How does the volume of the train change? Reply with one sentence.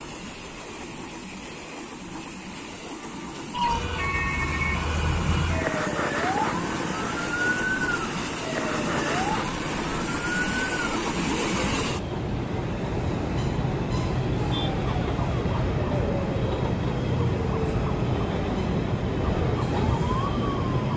The loudness of the train goes up.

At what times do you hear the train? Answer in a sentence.
The train can be heard from 0.0 to 20.9 s.